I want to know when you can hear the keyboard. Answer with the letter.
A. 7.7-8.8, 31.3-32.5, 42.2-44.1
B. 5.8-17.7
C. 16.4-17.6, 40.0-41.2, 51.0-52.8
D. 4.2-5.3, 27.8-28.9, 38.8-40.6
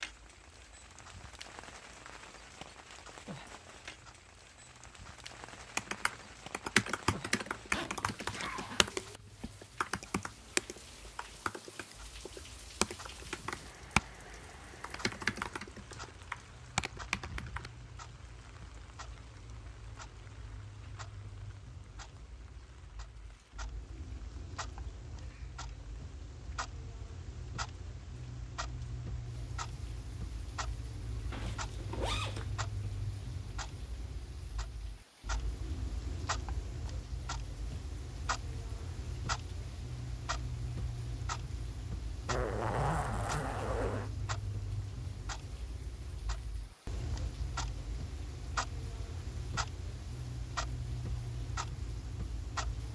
B.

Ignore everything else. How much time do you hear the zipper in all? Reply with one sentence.
The zipper can be heard for 4 seconds in total.